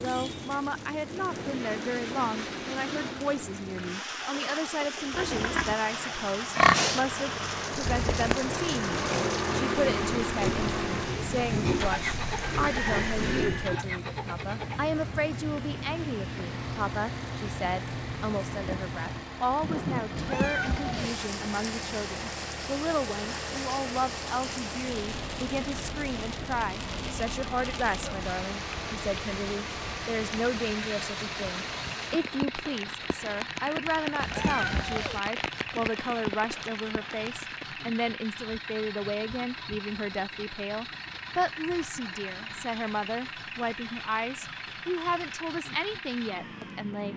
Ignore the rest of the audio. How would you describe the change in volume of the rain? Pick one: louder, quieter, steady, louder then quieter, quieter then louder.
steady.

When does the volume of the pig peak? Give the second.
7 s.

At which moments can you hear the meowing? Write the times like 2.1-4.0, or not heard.
20.1-21.1, 34.2-35.2.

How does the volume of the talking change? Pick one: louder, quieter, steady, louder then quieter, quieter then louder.
steady.